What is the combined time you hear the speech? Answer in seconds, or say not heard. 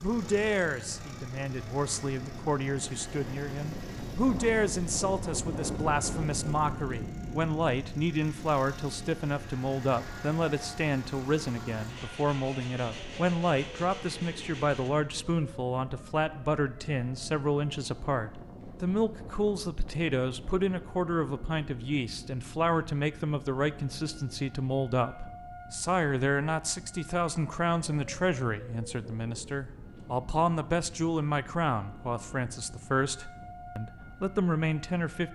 35 s.